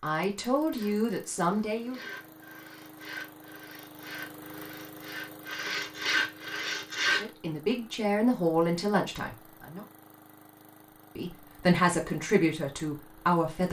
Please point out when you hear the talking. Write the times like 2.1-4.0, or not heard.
0.0-2.0, 7.2-9.8, 11.2-13.6.